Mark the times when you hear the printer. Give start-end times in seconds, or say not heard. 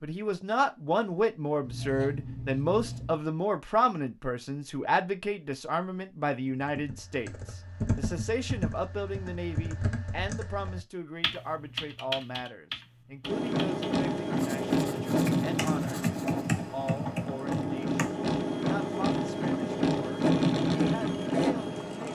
13.2-22.1.